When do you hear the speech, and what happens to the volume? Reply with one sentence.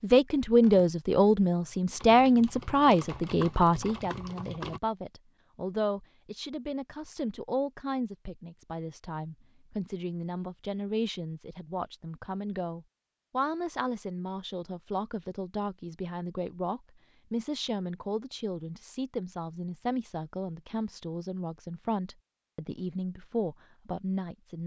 The speech can be heard from 0.0 to 24.6 s, getting quieter.